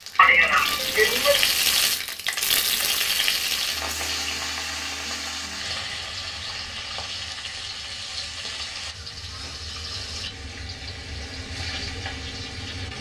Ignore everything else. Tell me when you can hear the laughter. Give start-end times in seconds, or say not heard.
0.1-1.4.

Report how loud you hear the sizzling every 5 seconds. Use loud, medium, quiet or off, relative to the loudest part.
loud, medium, medium.